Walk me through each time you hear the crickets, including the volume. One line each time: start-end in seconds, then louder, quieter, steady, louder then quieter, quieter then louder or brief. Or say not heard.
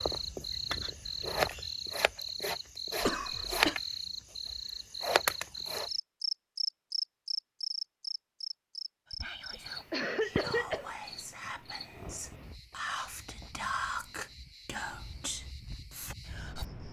0.0-16.8 quieter.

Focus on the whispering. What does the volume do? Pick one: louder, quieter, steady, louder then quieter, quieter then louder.
louder then quieter.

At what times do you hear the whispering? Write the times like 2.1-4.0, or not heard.
9.1-16.6.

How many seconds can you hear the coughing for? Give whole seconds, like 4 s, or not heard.
2 s.